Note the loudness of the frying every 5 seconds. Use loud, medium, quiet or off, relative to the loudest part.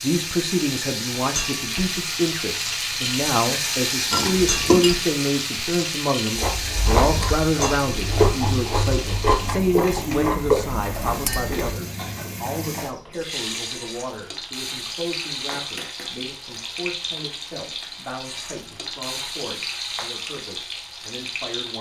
loud, loud, medium, medium, medium.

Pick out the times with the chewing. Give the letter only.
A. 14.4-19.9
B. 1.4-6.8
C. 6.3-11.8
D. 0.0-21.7
C.